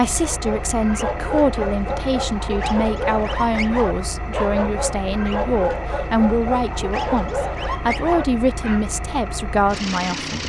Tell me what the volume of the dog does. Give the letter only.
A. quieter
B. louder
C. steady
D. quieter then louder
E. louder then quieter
C.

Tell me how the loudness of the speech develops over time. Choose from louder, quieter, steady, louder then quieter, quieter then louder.
steady.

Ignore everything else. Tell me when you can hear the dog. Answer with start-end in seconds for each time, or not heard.
0.1-8.8.